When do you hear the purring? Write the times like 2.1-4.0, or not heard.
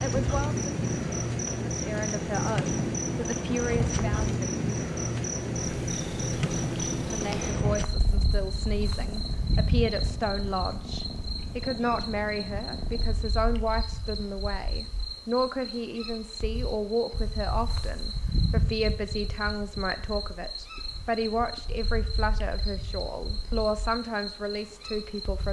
0.0-13.4.